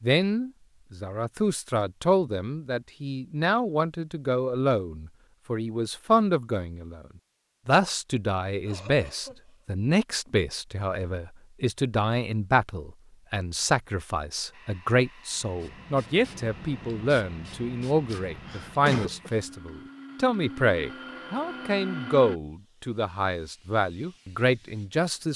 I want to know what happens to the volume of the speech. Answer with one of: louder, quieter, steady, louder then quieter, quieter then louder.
steady.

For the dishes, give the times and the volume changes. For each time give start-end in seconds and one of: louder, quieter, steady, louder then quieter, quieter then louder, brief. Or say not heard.
not heard.